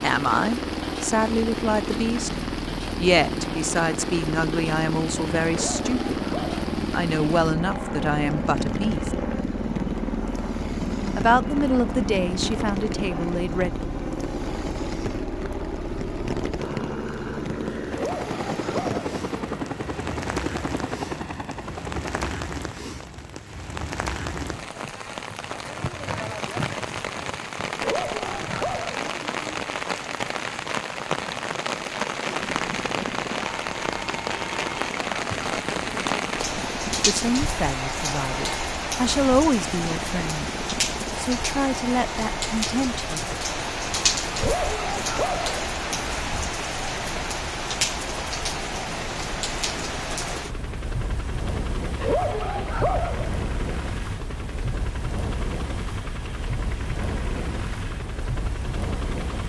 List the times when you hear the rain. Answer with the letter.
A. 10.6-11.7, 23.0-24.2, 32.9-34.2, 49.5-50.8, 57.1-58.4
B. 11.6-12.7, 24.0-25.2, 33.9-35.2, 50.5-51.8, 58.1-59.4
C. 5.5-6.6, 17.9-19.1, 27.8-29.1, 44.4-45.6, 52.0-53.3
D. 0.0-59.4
D.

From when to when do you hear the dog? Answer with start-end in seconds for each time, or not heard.
5.5-6.6, 17.9-19.1, 27.8-29.1, 44.4-45.6, 52.0-53.3.